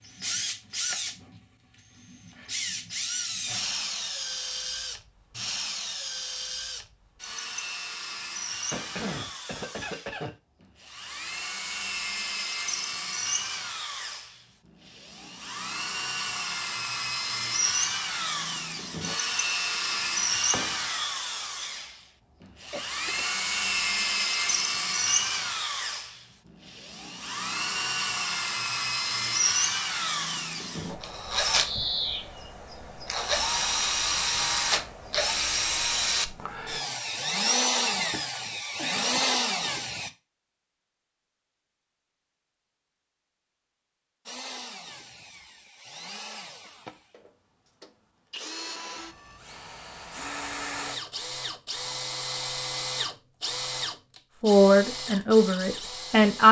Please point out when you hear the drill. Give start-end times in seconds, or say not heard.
0.0-40.1, 44.2-56.4.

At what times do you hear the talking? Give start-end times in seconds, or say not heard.
54.4-56.4.